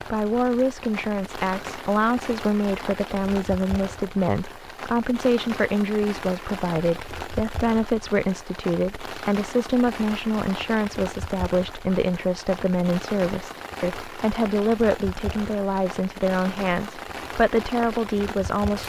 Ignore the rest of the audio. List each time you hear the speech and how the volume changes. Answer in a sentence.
You can hear the speech from 0.1 to 18.8 s, at a steady volume.